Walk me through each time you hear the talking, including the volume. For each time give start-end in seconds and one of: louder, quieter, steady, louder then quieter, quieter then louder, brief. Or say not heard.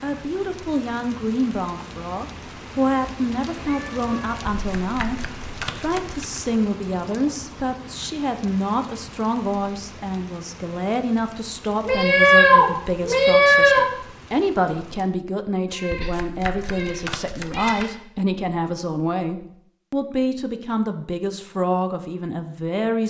0.0-23.0 steady.